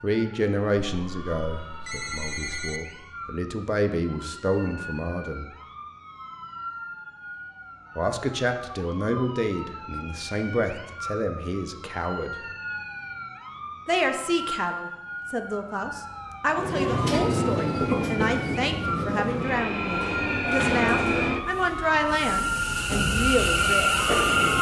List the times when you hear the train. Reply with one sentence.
The train can be heard from 16.5 to 24.5 s.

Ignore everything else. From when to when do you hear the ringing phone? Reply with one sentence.
You can hear the ringing phone from 1.0 to 2.8 s.